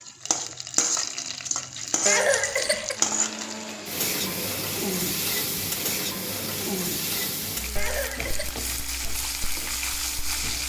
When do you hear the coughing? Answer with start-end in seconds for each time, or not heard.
2.0-3.0, 7.8-8.6.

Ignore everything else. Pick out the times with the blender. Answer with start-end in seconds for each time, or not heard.
2.9-10.6.